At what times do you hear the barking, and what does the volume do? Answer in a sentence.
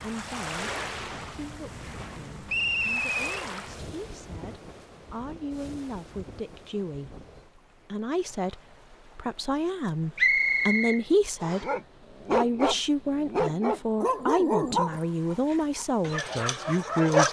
The barking can be heard from 11.6 to 17.2 s, getting quieter then louder.